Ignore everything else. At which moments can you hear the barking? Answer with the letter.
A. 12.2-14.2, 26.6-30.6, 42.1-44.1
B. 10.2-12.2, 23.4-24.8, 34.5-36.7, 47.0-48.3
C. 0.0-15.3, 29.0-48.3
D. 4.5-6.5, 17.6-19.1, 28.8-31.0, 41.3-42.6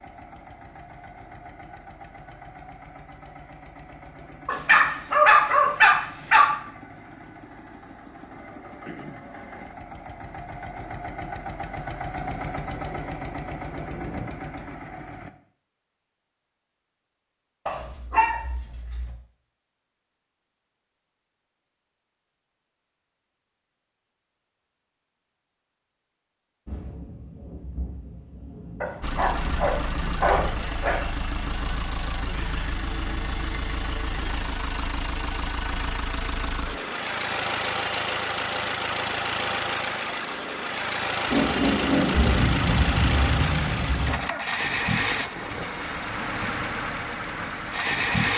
D.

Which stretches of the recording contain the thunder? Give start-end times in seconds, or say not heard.
12.2-14.2, 26.6-30.6, 42.1-44.1.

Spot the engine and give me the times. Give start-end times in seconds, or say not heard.
0.0-15.3, 29.0-48.3.